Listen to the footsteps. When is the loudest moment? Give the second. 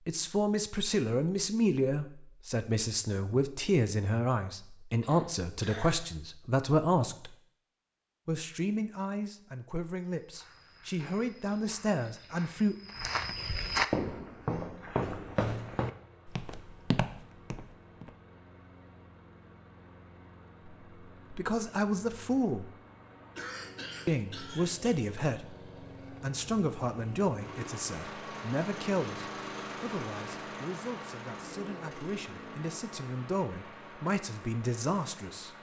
14 s.